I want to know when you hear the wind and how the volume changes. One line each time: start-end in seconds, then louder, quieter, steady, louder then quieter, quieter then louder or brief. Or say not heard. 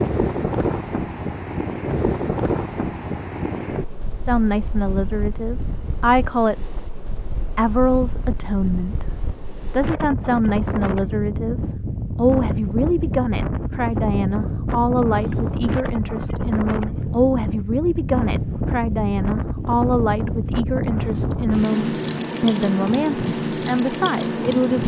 0.0-24.8 quieter then louder.